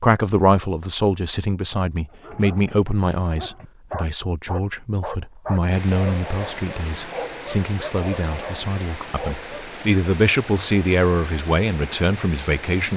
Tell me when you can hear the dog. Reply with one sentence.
The dog can be heard from 2.1 to 9.7 s.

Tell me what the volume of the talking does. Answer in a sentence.
The loudness of the talking goes down, then up.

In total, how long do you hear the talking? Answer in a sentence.
You can hear the talking for 13 seconds altogether.